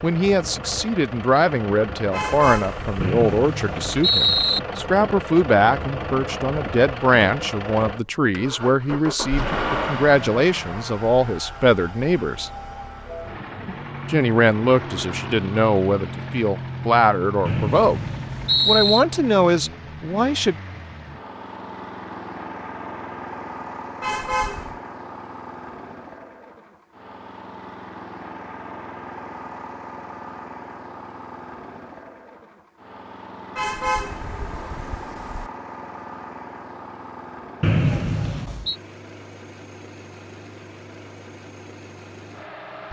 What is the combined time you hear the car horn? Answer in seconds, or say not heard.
4 s.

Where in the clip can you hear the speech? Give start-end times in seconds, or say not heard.
0.0-12.5, 14.1-18.0, 18.6-20.6.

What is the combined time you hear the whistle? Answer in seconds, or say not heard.
4 s.